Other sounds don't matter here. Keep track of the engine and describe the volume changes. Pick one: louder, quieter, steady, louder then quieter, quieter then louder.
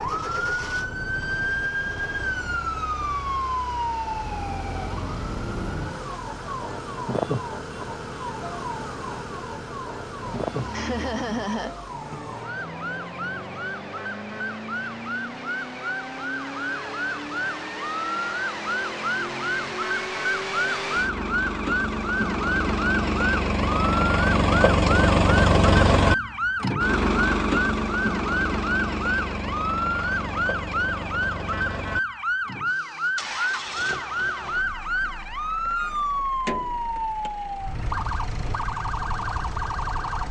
louder then quieter.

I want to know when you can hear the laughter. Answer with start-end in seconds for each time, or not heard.
10.7-12.2.